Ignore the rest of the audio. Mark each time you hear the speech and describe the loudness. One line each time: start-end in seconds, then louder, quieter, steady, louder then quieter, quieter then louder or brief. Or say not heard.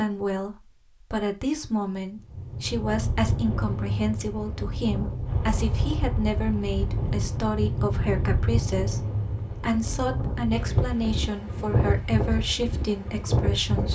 0.0-13.9 steady.